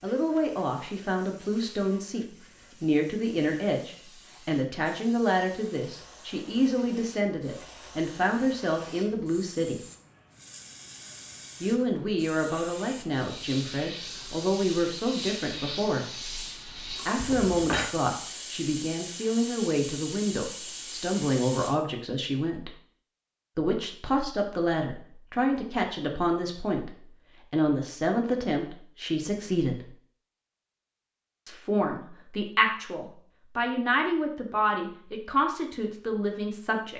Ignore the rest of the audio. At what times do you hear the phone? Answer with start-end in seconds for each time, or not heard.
17.1-17.9.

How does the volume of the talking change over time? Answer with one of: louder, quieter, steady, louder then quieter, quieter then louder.
steady.